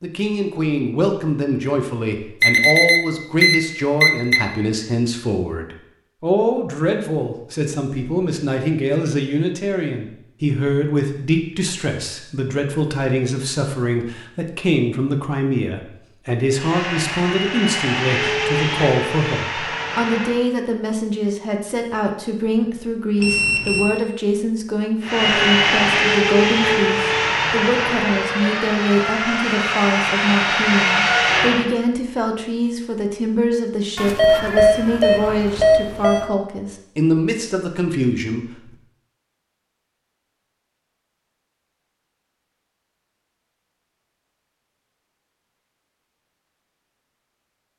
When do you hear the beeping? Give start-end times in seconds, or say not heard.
2.4-4.4, 23.2-24.0, 34.0-36.2.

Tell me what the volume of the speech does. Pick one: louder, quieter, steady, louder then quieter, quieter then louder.
steady.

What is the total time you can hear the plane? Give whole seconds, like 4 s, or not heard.
11 s.